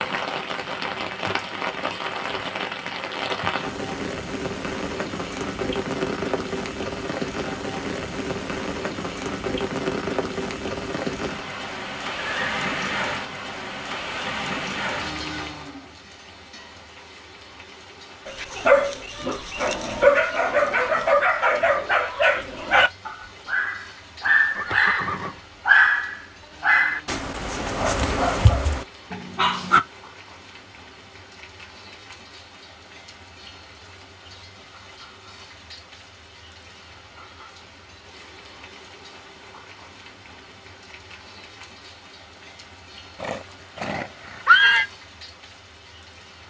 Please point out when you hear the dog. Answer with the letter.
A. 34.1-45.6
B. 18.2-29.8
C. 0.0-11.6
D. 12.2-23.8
B.